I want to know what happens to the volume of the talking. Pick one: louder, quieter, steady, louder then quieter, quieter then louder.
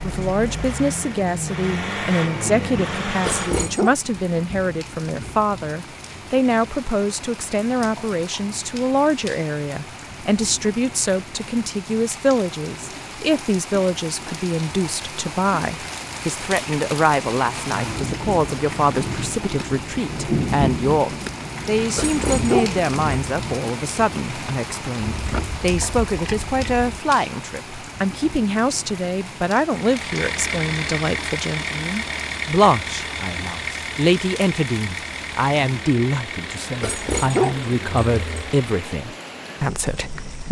steady.